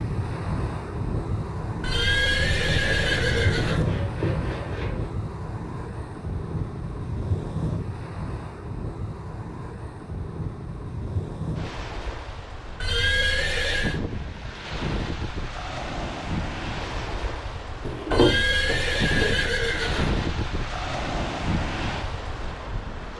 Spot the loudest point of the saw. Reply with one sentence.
The volume of the saw peaks at 18 seconds.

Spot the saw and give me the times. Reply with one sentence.
The saw can be heard from 2.8 to 5.1 s and from 17.9 to 19.4 s.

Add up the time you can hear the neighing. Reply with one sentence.
You can hear the neighing for 5 seconds altogether.